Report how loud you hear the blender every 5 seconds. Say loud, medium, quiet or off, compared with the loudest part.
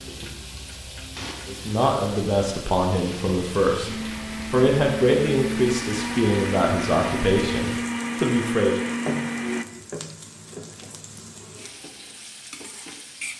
medium, loud, off.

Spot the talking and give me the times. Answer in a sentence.
You can hear the talking from 1.4 to 8.8 s.